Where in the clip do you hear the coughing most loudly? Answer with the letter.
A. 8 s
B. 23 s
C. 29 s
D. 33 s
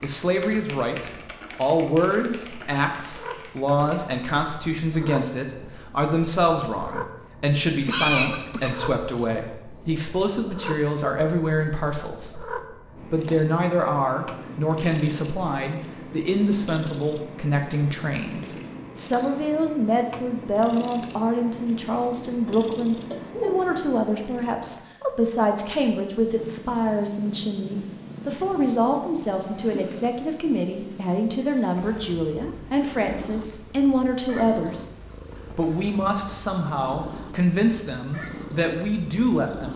A.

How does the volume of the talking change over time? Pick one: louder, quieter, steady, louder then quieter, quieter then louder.
steady.